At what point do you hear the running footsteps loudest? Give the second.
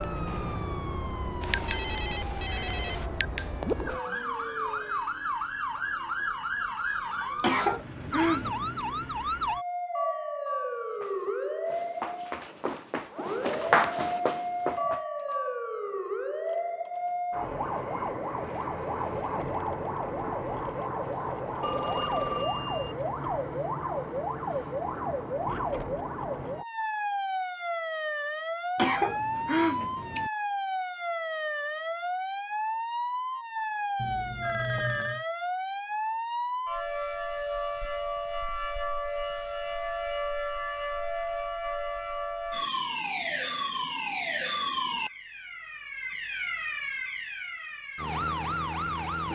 14 s.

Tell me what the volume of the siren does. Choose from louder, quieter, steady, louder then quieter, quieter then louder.
steady.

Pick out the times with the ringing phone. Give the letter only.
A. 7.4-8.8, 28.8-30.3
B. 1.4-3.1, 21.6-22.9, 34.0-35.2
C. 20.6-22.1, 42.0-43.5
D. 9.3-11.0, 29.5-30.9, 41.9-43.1
B.